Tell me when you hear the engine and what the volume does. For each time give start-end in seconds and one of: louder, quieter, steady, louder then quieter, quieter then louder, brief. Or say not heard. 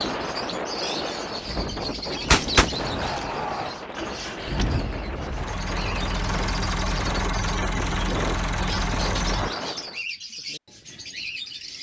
0.0-9.5 louder.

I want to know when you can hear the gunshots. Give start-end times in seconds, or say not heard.
2.2-3.7.